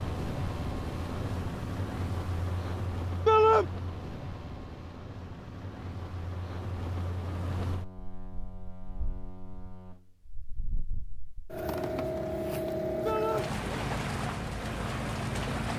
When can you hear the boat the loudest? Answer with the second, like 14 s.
13 s.